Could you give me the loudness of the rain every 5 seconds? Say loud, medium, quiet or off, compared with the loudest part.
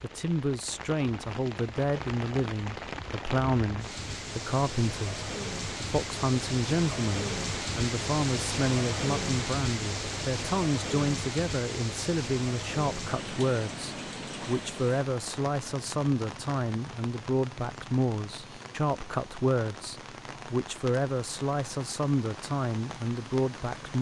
medium, loud, loud, medium, medium.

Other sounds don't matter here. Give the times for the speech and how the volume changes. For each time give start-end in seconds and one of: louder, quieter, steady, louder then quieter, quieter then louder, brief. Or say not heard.
0.0-23.9 steady.